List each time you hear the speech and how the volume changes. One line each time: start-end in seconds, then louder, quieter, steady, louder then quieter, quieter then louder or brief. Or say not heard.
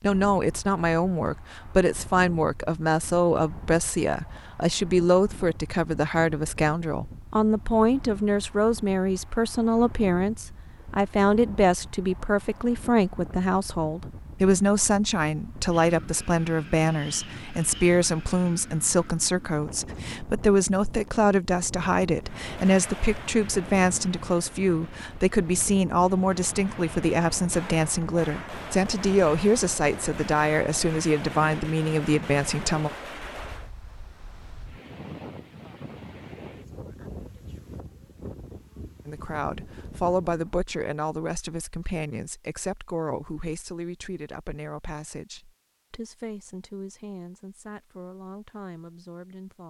0.0-32.9 steady
39.0-49.6 quieter.